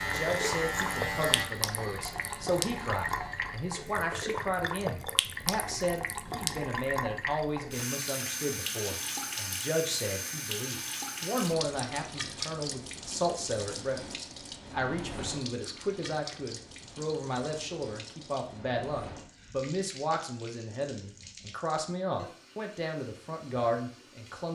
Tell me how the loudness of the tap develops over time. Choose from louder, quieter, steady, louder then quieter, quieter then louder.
quieter.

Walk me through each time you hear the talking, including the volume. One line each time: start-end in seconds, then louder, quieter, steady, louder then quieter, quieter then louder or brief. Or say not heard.
0.0-24.5 steady.